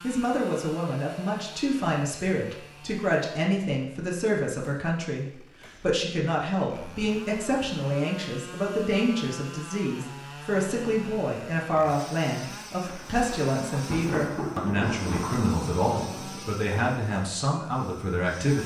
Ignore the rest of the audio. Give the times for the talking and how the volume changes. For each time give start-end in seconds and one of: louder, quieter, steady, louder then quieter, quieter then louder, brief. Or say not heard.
0.0-18.6 steady.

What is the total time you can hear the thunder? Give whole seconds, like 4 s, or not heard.
4 s.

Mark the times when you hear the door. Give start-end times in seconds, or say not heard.
not heard.